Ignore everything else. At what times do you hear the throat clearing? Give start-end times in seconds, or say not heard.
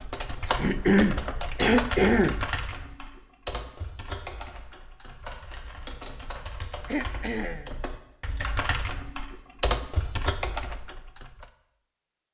0.5-2.4, 6.8-7.7.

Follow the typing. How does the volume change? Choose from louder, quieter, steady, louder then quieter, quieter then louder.
quieter then louder.